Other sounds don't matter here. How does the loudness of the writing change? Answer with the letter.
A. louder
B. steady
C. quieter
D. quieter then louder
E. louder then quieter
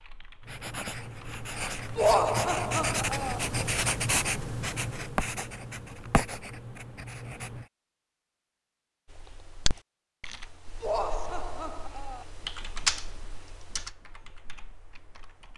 E.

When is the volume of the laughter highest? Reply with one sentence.
The loudest moment of the laughter is at 2 seconds.